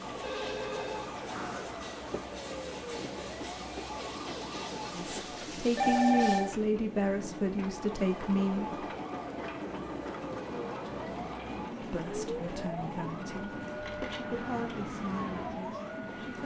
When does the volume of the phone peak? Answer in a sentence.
The loudest moment of the phone is at 6 seconds.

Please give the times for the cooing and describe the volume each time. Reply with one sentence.
The cooing can't be heard in this clip.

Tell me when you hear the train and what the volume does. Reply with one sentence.
You can hear the train from 0.0 to 16.4 s, at a steady volume.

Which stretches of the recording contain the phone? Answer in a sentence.
The phone can be heard from 0.2 to 1.1 s, from 5.8 to 6.5 s and from 13.8 to 14.3 s.